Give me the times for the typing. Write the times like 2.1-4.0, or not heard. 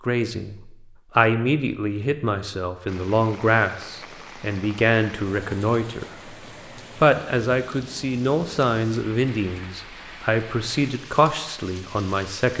not heard.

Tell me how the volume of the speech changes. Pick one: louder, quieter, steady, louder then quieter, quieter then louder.
steady.